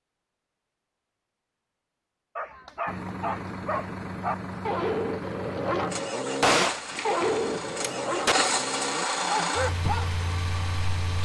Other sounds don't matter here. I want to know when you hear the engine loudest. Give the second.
9 s.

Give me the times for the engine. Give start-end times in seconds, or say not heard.
2.9-11.1.